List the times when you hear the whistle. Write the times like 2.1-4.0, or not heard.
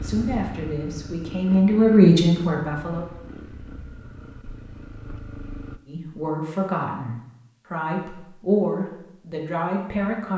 not heard.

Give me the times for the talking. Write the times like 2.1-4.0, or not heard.
0.0-3.0, 5.8-10.3.